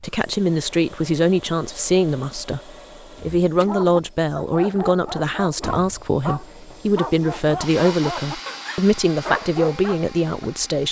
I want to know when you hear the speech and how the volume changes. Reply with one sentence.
The speech can be heard from 0.0 to 10.8 s, at a steady volume.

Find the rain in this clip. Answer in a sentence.
The rain can't be heard in this clip.